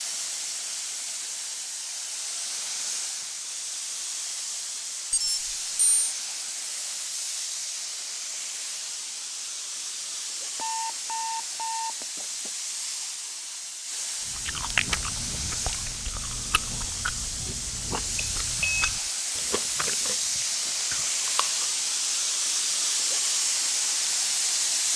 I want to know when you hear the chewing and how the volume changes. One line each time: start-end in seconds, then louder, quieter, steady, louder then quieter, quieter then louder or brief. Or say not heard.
14.2-21.8 quieter.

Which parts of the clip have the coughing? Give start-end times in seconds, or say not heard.
not heard.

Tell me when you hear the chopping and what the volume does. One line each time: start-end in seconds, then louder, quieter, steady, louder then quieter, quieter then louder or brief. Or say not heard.
not heard.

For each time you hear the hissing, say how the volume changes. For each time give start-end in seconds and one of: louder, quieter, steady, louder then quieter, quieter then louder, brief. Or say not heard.
0.0-24.9 louder.